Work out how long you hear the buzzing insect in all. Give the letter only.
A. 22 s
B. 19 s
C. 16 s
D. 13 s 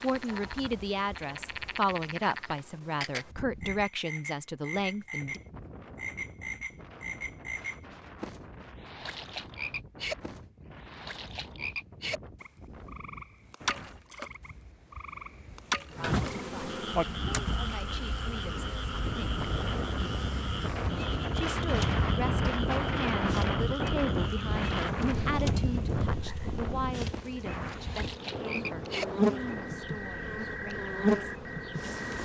C.